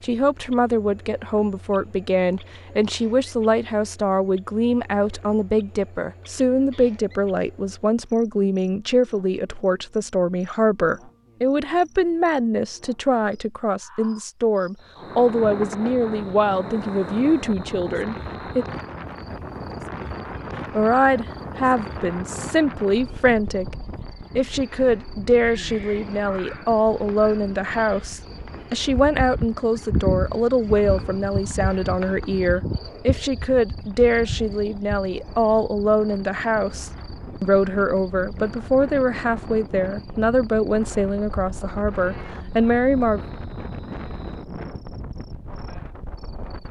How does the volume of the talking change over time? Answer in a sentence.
The loudness of the talking stays about the same.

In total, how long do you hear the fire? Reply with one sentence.
You can't hear the fire here.